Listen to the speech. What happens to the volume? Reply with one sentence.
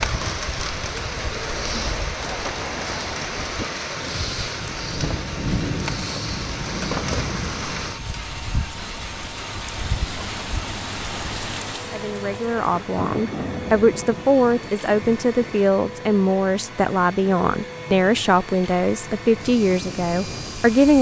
The volume of the speech stays about the same.